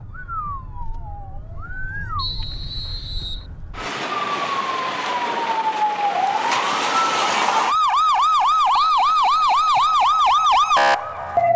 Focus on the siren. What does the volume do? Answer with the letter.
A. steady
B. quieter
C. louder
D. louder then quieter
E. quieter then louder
C.